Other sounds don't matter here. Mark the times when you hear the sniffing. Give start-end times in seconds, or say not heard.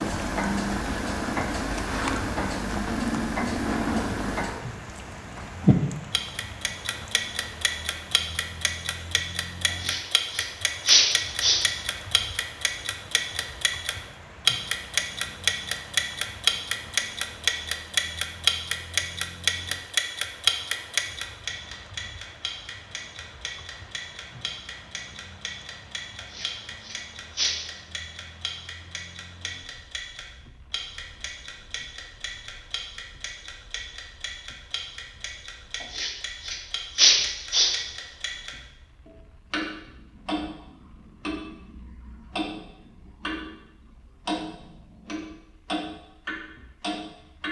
9.8-11.6, 26.3-27.6, 35.9-37.7.